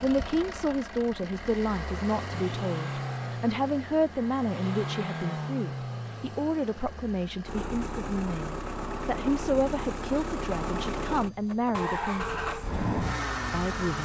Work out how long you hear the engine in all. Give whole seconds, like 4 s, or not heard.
14 s.